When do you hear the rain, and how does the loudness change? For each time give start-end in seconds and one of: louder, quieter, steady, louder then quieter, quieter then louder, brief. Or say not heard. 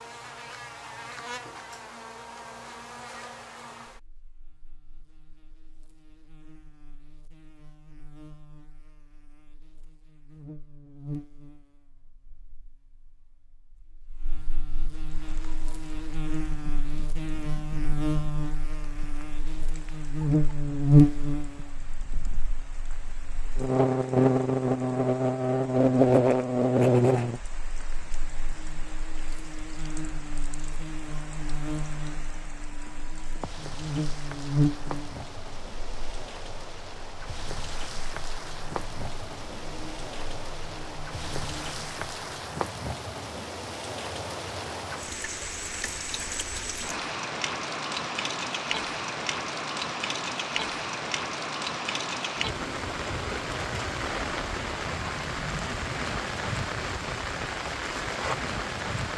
15.0-59.1 louder.